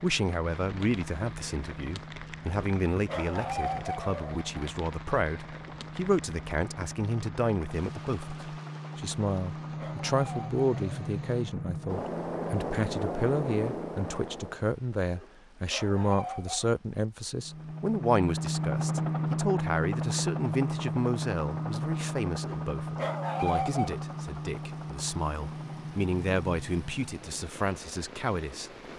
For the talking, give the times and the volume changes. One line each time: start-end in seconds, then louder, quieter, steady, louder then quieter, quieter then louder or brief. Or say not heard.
0.0-28.7 steady.